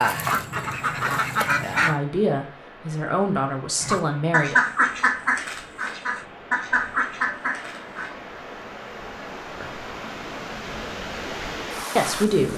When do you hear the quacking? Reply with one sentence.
You can hear the quacking from 0.0 to 1.9 s and from 3.8 to 8.2 s.